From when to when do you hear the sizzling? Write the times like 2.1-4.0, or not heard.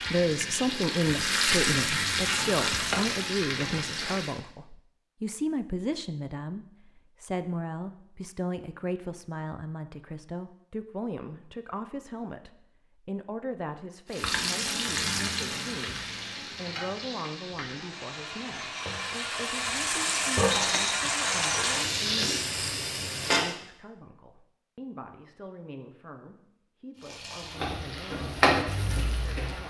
0.0-4.4, 14.1-23.6, 26.9-29.6.